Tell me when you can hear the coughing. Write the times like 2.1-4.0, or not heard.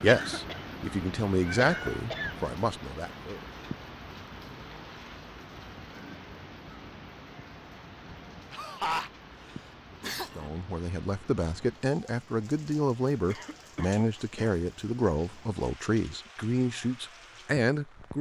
0.1-0.8, 1.6-2.4, 8.5-10.5, 13.2-14.6.